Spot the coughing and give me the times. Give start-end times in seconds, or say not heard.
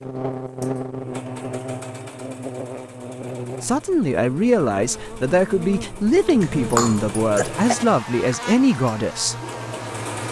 6.4-7.8.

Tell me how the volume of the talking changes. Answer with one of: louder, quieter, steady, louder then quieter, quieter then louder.
steady.